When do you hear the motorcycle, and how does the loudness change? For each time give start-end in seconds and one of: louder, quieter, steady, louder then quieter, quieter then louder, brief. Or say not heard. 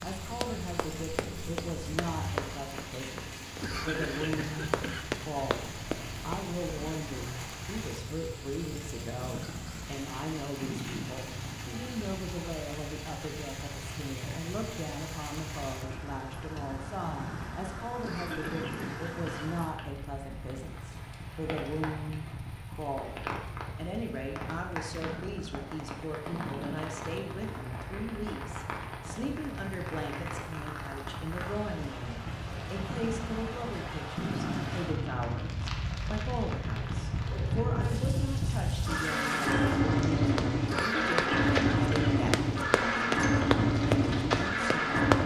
0.0-45.2 louder.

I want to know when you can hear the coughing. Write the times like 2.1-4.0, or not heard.
3.6-5.1, 18.0-19.6, 40.6-42.2.